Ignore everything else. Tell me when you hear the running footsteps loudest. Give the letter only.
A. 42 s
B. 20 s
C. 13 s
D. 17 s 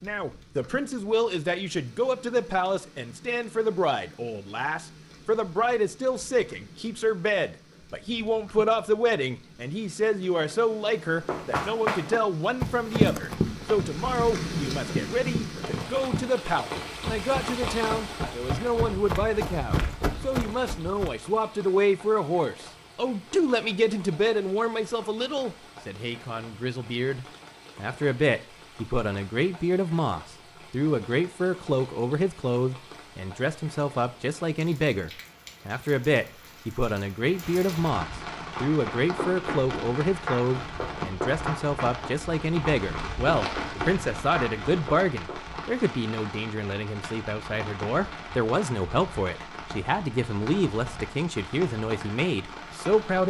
C.